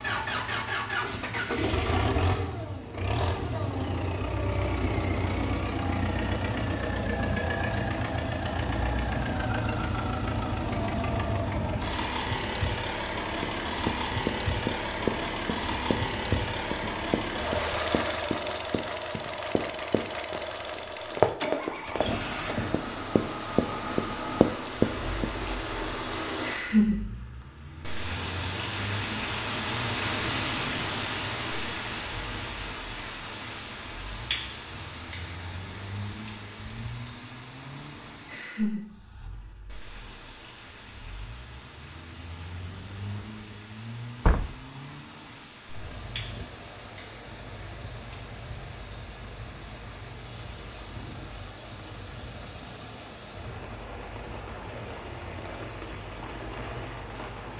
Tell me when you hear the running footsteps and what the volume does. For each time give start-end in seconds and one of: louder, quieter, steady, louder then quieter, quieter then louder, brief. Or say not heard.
13.4-25.3 quieter then louder.